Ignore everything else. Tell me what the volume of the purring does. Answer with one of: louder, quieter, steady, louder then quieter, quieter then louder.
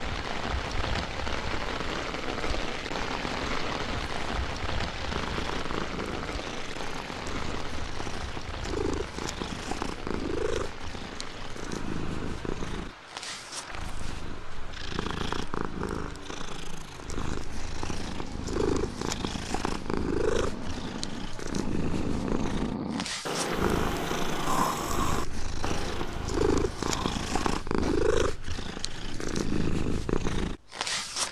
louder.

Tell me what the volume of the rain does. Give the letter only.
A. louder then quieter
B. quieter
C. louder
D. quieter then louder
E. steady
B.